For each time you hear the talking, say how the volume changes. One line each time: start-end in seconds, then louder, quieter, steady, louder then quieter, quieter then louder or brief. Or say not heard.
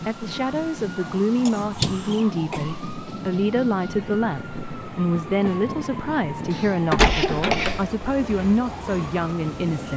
0.1-9.9 steady.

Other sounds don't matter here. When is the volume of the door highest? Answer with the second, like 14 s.
7 s.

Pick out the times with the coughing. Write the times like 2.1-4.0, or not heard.
1.4-2.6, 6.5-7.9.